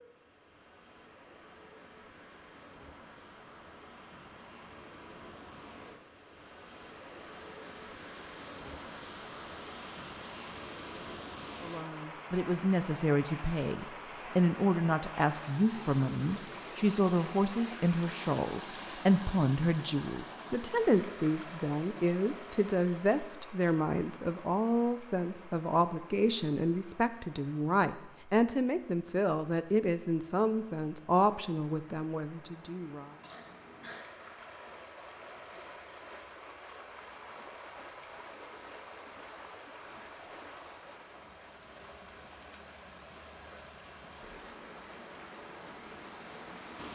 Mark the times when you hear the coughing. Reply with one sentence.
The coughing can be heard from 33.2 to 34.0 s.